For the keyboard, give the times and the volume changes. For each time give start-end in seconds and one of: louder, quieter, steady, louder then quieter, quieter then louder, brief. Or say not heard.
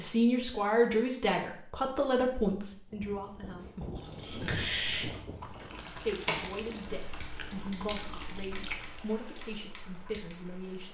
4.2-10.4 quieter.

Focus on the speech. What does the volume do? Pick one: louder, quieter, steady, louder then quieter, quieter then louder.
quieter.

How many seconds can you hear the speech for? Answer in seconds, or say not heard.
9 s.